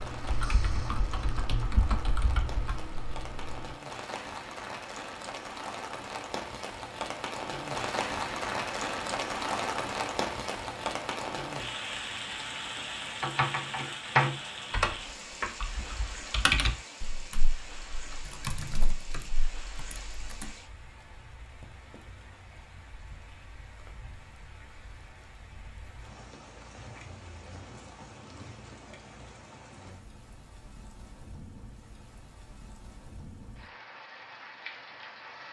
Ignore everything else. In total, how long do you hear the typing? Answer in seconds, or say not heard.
11 s.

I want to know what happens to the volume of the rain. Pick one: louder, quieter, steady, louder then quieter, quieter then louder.
louder then quieter.